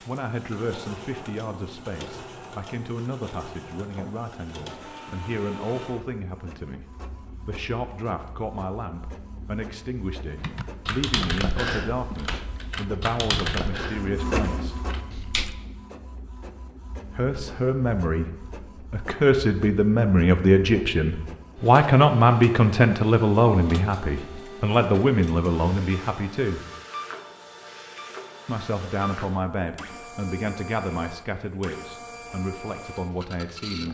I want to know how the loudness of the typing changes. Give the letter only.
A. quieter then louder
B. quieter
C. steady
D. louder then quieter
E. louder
B.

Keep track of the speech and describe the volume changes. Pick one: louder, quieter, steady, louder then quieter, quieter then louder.
louder then quieter.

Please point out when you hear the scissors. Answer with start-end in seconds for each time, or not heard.
not heard.